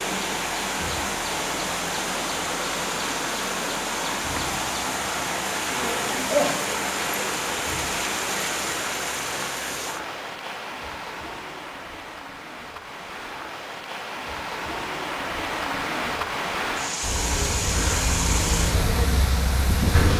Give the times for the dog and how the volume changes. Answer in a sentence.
The dog can't be heard in this clip.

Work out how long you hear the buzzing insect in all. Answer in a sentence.
The buzzing insect can be heard for 5 seconds in total.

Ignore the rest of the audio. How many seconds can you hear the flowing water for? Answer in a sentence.
The flowing water can be heard for 20 seconds in total.